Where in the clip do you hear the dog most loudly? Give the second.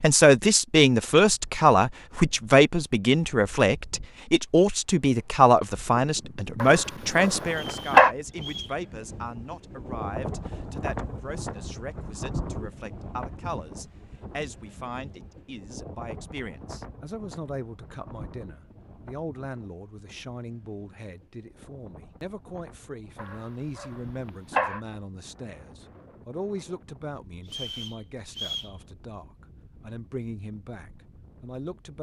8 s.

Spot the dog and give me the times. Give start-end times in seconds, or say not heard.
6.6-8.1, 23.1-24.8.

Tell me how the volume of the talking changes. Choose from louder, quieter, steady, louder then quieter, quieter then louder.
quieter.